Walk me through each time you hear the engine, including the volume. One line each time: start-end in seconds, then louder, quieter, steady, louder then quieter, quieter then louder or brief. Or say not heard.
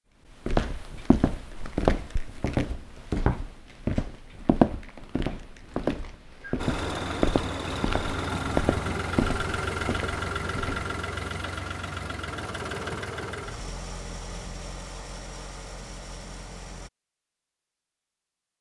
6.5-16.9 quieter.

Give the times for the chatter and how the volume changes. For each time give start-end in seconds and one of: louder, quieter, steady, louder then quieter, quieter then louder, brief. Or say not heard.
not heard.